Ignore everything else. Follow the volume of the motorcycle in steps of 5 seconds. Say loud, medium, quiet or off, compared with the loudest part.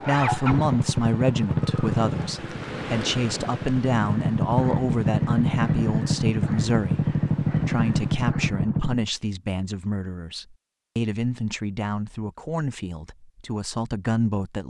loud, loud, off.